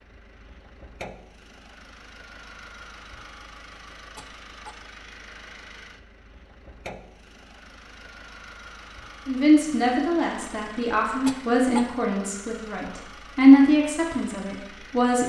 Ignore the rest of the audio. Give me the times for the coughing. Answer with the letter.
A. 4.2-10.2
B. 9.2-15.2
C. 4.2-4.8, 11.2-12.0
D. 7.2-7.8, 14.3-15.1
C.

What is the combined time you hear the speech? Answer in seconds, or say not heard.
6 s.